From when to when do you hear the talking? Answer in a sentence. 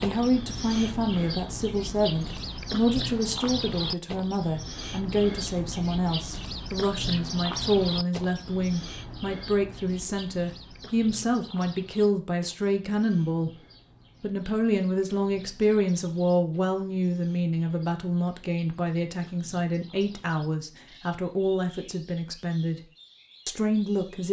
You can hear the talking from 0.0 to 13.6 s, from 14.2 to 22.8 s and from 23.4 to 24.2 s.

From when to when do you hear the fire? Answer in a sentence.
The fire can't be heard in this clip.